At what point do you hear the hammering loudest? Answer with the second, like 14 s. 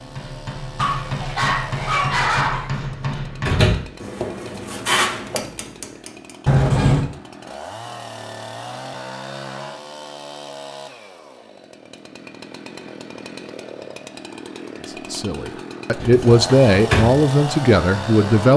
5 s.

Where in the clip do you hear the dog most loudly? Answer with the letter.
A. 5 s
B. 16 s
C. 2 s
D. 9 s
C.